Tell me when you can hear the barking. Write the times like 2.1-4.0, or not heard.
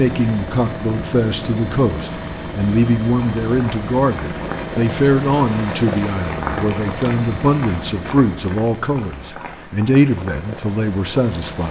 not heard.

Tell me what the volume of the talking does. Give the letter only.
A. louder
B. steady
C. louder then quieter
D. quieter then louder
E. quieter
B.